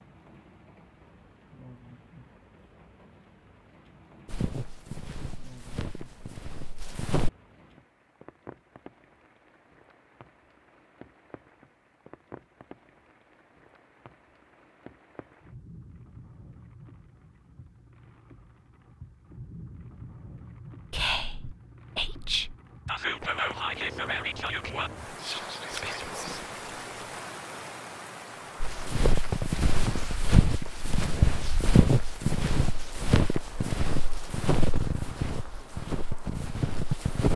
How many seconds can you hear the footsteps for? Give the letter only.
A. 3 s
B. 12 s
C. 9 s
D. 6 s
B.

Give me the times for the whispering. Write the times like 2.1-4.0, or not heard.
20.9-26.6.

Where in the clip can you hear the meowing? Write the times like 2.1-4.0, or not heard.
not heard.